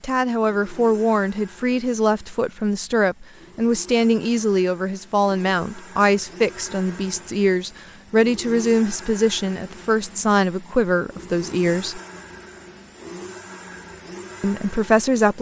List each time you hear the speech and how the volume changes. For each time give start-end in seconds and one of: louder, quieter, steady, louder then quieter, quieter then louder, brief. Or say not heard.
0.0-12.0 steady
14.4-15.3 brief.